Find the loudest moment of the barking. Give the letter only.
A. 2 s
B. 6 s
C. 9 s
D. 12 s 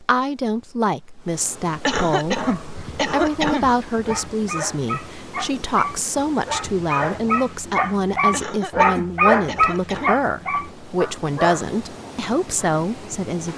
C.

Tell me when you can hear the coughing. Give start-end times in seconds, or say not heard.
1.9-3.7, 8.3-10.2.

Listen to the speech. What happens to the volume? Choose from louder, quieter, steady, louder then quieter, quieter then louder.
steady.